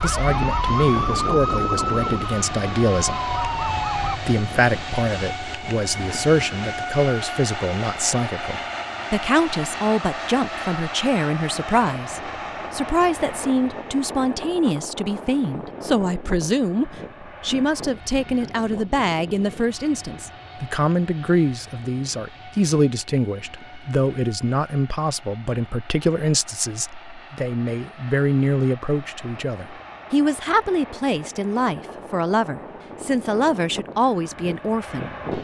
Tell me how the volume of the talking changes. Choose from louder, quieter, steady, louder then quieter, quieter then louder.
steady.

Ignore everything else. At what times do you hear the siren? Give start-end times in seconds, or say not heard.
0.0-4.2.